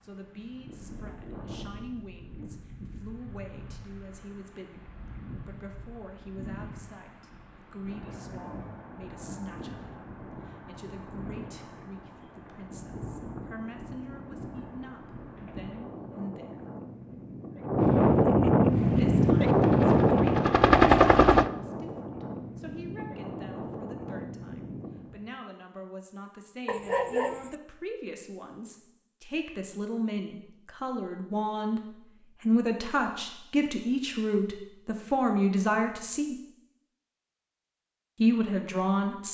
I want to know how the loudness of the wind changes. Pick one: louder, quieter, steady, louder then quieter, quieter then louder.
louder then quieter.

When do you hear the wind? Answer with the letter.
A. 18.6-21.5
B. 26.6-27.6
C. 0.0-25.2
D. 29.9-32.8
C.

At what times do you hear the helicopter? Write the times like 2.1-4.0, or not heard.
18.6-21.5.